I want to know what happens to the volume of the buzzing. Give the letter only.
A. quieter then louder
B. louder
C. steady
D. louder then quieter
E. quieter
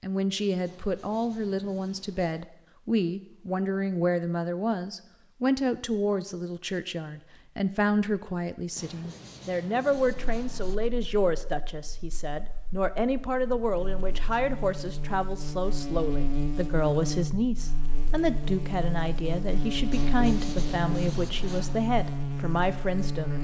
B.